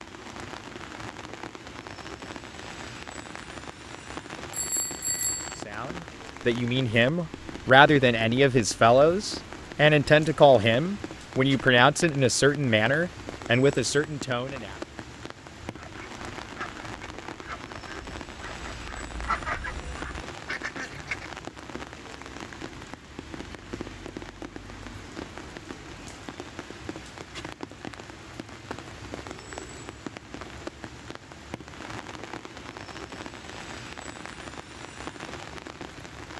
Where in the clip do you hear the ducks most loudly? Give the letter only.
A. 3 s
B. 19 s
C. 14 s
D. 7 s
B.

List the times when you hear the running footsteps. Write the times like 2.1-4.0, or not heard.
not heard.